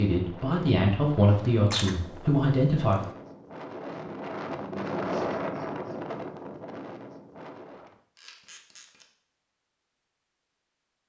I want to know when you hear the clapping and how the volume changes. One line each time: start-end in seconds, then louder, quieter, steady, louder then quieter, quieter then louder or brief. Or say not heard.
not heard.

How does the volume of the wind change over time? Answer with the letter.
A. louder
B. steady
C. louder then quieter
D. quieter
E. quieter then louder
C.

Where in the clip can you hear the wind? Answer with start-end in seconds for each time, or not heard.
0.0-8.0.